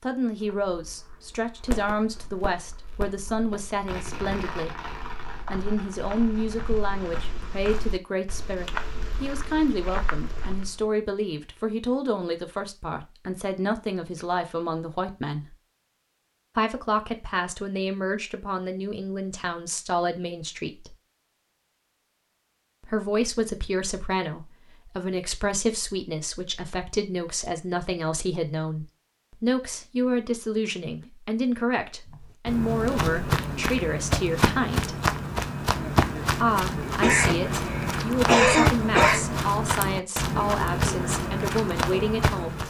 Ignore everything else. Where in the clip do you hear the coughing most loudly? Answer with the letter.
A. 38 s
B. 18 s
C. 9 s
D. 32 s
A.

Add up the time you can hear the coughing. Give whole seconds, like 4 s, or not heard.
2 s.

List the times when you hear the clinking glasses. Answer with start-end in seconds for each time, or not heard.
not heard.